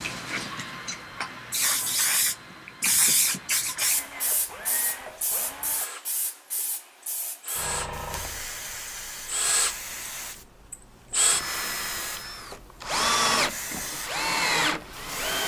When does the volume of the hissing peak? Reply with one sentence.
The loudest moment of the hissing is at 3 seconds.